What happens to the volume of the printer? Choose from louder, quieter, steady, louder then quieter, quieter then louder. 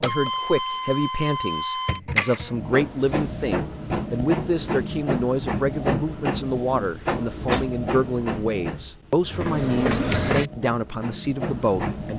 steady.